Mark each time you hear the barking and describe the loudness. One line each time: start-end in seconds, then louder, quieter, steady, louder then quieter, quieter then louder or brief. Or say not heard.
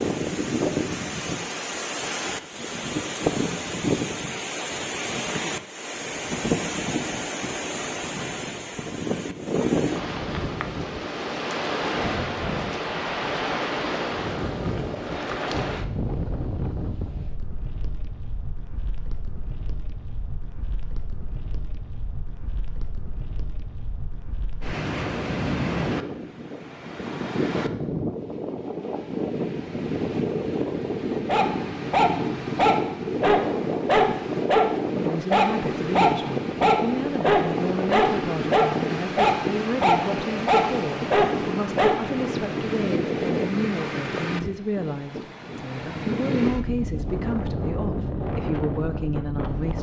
31.2-42.0 steady.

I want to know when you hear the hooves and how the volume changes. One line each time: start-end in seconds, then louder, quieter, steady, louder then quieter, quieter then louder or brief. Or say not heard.
not heard.